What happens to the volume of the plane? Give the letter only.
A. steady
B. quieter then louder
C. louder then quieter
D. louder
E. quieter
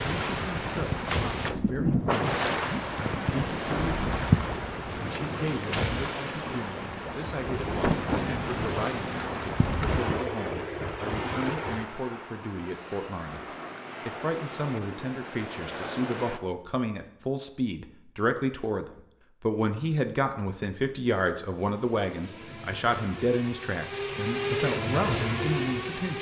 D.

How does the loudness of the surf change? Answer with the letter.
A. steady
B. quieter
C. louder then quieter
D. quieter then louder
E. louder
B.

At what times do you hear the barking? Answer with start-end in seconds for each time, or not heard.
not heard.